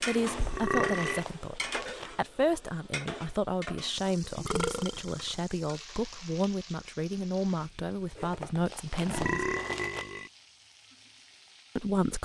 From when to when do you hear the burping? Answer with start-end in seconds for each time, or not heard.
0.3-1.2, 4.3-5.4, 9.1-10.3.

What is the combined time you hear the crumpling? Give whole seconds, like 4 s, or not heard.
4 s.